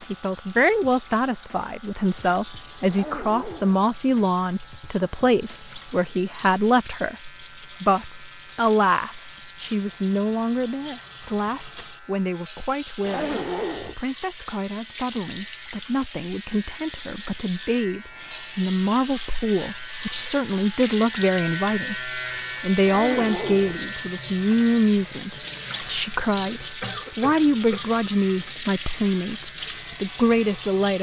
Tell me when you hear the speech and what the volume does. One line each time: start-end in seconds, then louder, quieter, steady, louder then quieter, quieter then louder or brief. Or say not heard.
0.1-30.9 quieter then louder.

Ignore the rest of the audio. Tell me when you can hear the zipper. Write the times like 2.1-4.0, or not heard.
2.9-3.8, 13.0-13.9, 22.9-23.8.